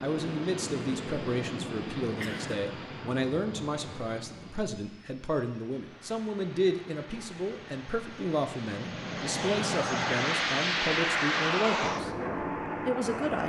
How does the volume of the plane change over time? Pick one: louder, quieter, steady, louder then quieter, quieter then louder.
quieter then louder.